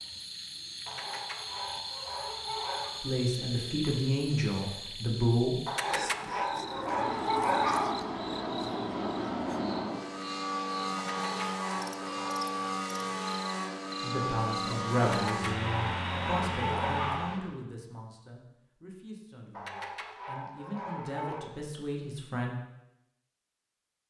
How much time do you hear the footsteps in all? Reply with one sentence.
You can't hear the footsteps here.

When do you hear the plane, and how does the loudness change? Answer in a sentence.
You can hear the plane from 6.5 to 17.6 s, at a steady volume.